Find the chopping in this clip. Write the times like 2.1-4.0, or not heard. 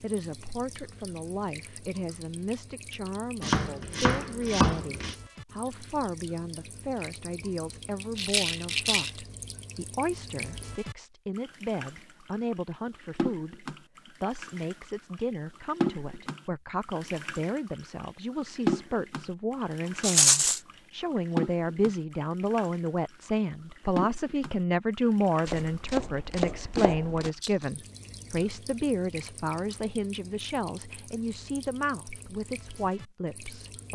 3.4-5.2, 25.4-27.3.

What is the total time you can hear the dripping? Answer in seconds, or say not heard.
34 s.